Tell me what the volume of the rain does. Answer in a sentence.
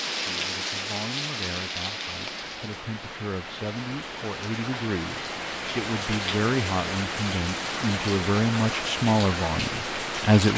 The loudness of the rain goes down, then up.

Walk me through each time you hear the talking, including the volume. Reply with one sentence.
The talking can be heard from 0.1 to 10.5 s, getting louder.